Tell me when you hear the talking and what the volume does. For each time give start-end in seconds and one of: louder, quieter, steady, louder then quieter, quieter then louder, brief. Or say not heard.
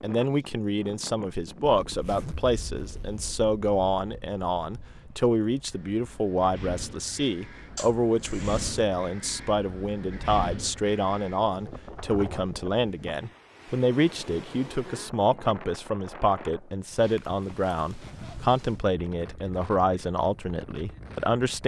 0.0-21.6 steady.